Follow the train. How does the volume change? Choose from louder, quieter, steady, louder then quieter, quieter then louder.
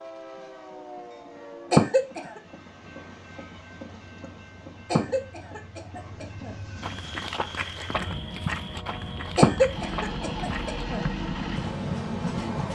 louder.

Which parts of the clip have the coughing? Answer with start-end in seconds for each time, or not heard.
1.7-2.4, 4.9-6.5, 9.3-11.0.